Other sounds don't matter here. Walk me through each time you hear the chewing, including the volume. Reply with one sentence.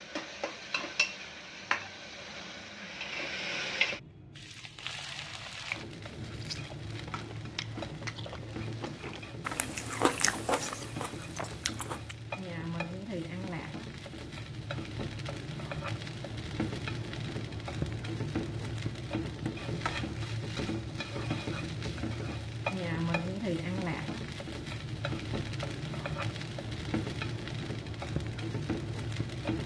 The chewing can be heard from 6.2 to 12.2 s, getting louder then quieter.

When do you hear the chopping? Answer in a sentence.
You can't hear the chopping here.